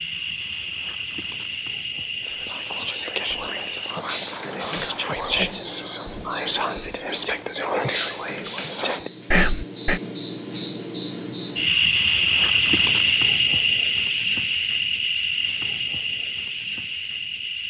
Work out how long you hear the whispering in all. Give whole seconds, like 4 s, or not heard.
8 s.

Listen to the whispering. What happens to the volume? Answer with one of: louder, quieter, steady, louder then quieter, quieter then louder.
louder.